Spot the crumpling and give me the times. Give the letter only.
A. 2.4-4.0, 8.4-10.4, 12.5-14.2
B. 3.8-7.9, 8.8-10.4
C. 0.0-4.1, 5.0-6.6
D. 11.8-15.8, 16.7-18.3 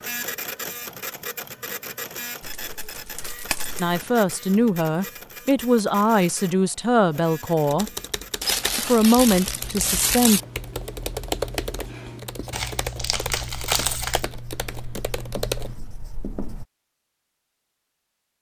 A.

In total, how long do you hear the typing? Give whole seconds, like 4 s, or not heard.
8 s.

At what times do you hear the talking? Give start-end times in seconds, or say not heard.
3.8-7.9, 8.8-10.4.